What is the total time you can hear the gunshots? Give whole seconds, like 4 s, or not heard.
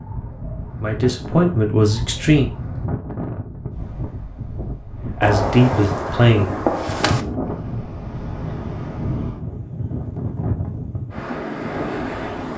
2 s.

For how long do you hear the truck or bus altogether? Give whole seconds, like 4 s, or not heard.
not heard.